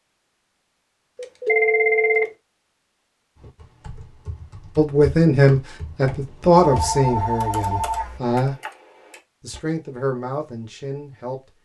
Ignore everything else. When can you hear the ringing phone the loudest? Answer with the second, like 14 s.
2 s.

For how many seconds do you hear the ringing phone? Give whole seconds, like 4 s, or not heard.
3 s.